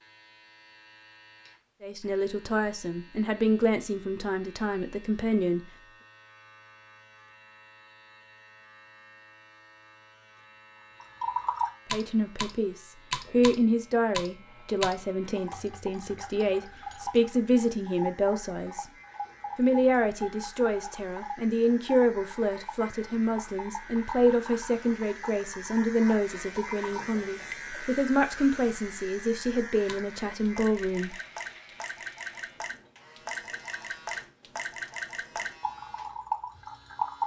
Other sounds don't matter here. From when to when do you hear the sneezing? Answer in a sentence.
The sneezing can't be heard in this clip.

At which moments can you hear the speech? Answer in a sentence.
The speech can be heard from 1.8 to 5.7 s, from 11.8 to 18.9 s and from 19.6 to 31.1 s.